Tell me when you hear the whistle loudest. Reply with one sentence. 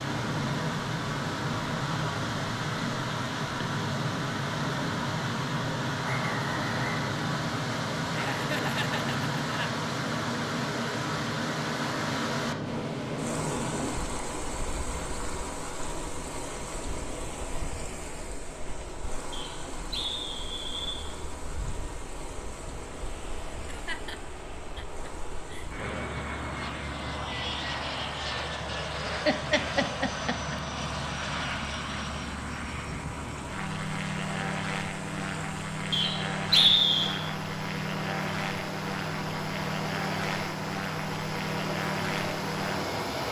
The loudest moment of the whistle is at 37 seconds.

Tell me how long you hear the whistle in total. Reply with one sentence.
The whistle can be heard for 4 seconds in total.